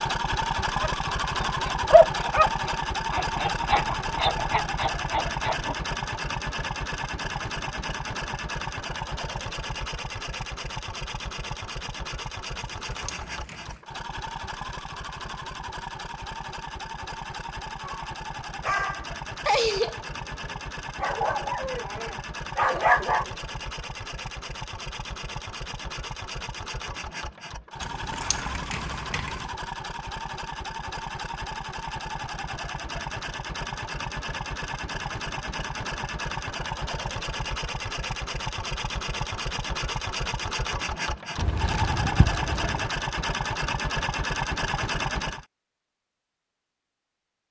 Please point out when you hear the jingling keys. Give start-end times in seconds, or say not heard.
12.7-13.8, 27.8-29.5, 41.4-42.9.